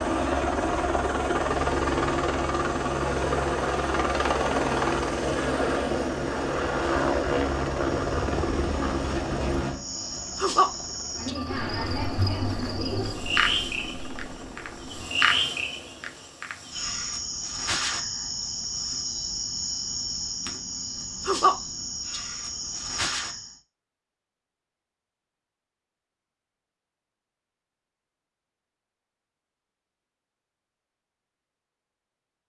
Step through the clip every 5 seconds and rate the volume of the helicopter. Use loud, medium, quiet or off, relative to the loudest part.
loud, loud, quiet, quiet, off, off, off.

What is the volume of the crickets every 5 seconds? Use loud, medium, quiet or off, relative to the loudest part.
quiet, quiet, loud, loud, loud, off, off.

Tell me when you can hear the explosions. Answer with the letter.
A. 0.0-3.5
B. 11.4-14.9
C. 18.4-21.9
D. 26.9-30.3
B.